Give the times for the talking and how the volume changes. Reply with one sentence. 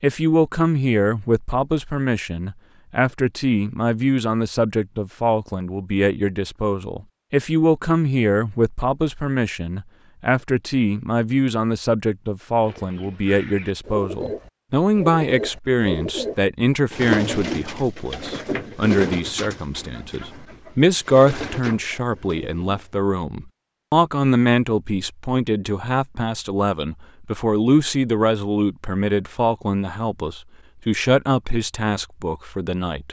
The talking can be heard from 0.0 to 33.0 s, at a steady volume.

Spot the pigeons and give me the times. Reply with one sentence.
You can hear the pigeons from 12.6 to 22.9 s.